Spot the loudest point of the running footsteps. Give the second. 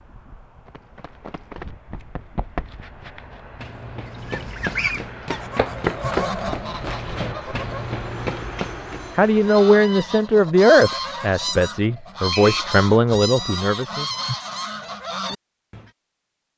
6 s.